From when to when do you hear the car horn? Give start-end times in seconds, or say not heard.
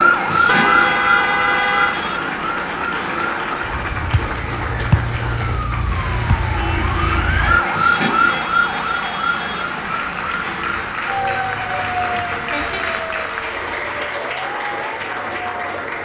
0.5-2.0, 6.5-7.3, 12.1-13.0.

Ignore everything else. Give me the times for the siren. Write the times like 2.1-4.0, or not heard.
0.0-16.0.